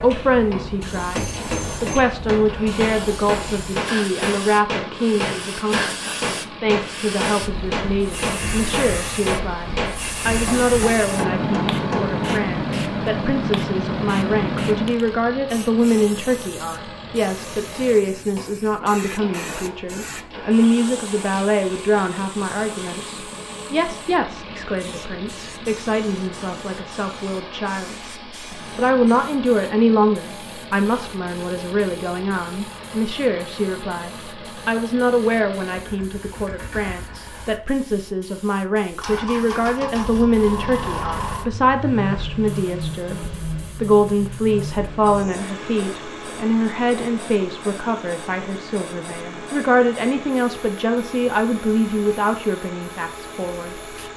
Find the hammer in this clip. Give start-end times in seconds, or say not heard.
0.9-12.3.